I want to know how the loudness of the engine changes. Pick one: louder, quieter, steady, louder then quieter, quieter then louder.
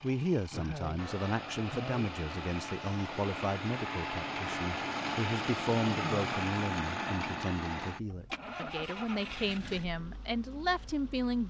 louder then quieter.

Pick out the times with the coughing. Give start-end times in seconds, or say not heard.
0.5-2.1, 5.8-6.3.